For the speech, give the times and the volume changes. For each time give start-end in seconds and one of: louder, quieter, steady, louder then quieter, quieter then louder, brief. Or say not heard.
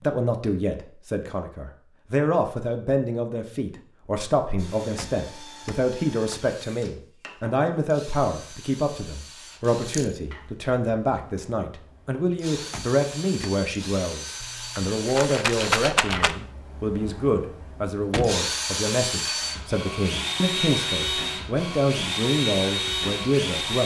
0.0-23.8 steady.